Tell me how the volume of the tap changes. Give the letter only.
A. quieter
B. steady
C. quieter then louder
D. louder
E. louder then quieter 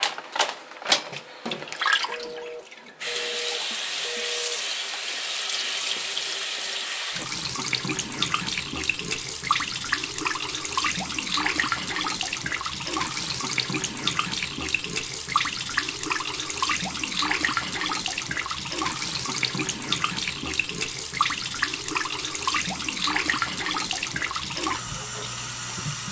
B.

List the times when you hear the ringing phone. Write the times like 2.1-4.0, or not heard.
2.0-4.6.